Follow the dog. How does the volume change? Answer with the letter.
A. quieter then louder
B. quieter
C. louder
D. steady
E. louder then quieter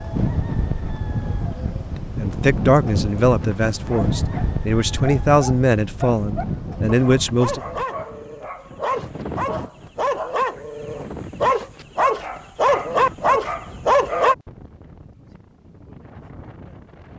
C.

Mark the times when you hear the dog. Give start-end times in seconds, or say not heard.
3.9-14.3.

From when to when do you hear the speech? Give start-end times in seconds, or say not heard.
1.9-7.6.